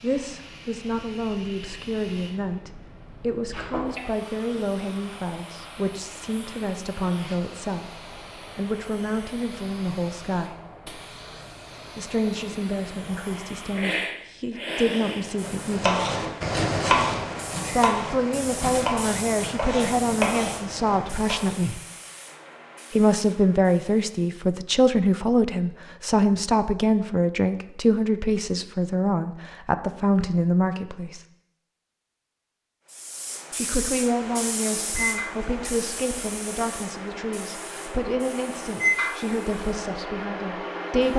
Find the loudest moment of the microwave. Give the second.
39 s.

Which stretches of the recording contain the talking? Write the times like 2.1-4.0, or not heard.
0.0-10.6, 11.9-16.1, 17.7-21.8, 22.9-31.2, 33.5-41.1.